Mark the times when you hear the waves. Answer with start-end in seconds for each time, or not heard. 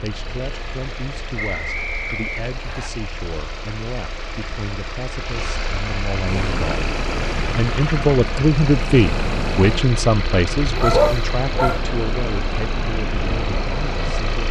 6.2-14.4.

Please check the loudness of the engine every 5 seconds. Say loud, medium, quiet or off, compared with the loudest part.
medium, loud, loud.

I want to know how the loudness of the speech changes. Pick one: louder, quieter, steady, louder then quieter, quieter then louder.
louder then quieter.